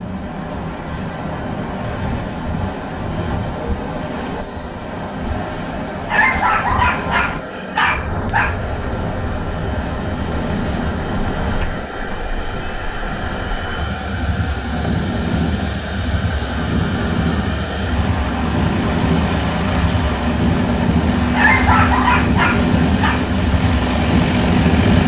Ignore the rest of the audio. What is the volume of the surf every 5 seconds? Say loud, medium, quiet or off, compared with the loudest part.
medium, medium, medium, loud, loud.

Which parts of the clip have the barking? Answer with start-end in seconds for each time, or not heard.
6.0-8.6, 21.4-23.2.